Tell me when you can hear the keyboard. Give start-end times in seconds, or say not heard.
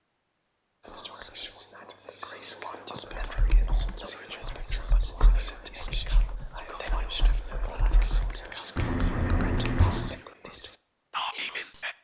3.1-10.2.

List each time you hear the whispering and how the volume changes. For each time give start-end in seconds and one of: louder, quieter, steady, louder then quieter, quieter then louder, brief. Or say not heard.
0.8-11.9 steady.